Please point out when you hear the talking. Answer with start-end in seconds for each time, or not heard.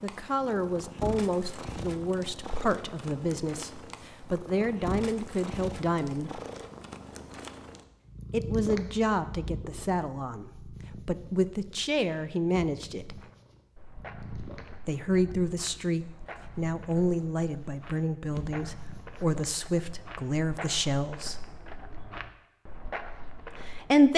0.0-6.4, 8.3-13.2, 14.8-21.4, 23.5-24.1.